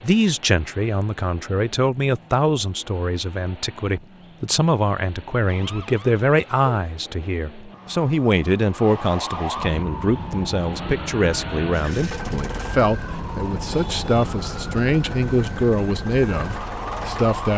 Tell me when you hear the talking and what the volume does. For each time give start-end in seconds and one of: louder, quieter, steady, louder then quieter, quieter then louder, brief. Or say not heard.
0.0-17.5 steady.